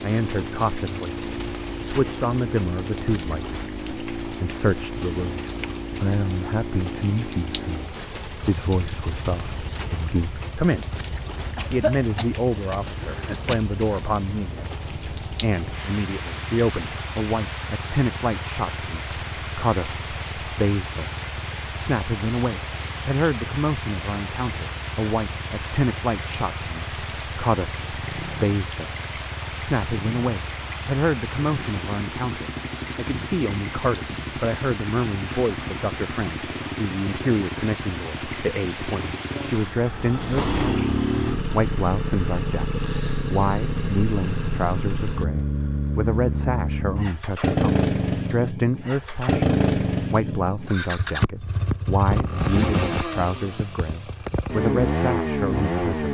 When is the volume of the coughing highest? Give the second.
12 s.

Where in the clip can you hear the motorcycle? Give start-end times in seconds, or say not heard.
0.0-56.0.